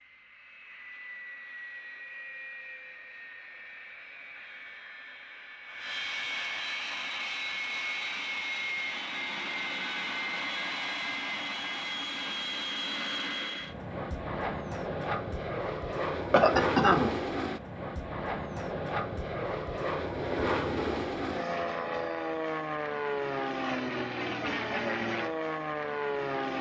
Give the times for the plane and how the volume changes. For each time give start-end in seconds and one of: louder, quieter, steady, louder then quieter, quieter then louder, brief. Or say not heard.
0.0-26.5 louder.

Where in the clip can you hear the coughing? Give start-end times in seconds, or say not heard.
16.3-17.1.